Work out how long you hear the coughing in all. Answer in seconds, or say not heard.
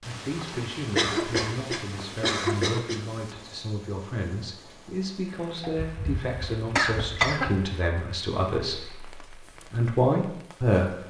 4 s.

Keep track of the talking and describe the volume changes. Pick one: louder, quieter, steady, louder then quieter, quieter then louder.
louder.